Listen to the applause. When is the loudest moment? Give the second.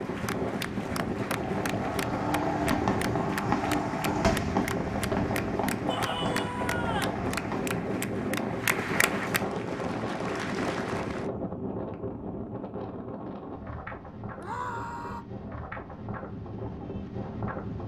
9 s.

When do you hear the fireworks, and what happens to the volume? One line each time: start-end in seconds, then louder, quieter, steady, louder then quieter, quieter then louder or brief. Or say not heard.
1.4-7.8 quieter.